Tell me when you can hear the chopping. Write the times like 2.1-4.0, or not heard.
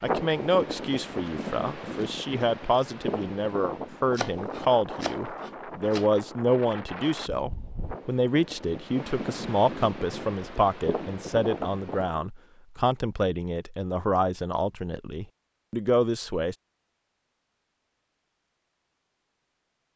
4.1-6.0.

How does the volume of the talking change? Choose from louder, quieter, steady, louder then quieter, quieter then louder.
steady.